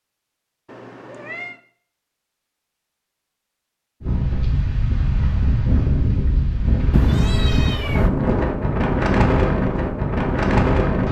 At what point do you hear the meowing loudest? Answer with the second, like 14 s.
7 s.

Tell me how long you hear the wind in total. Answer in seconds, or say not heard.
7 s.